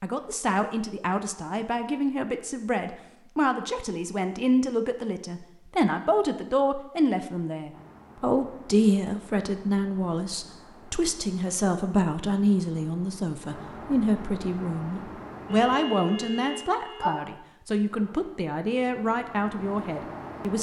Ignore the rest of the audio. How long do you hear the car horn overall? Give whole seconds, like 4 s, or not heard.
2 s.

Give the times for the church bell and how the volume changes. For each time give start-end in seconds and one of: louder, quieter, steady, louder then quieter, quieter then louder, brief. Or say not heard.
not heard.